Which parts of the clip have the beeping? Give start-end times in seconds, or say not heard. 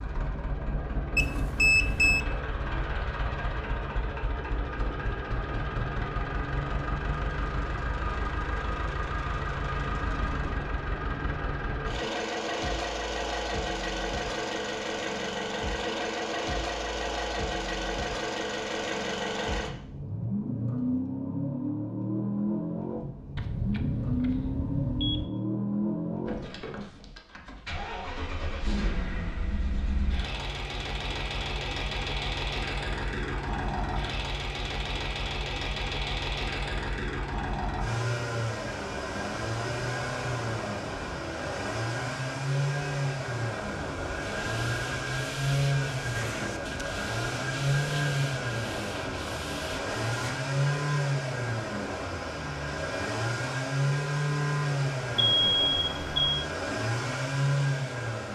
1.1-2.2, 23.4-25.3, 55.1-56.4.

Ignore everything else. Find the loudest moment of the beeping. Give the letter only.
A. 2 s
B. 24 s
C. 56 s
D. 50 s
A.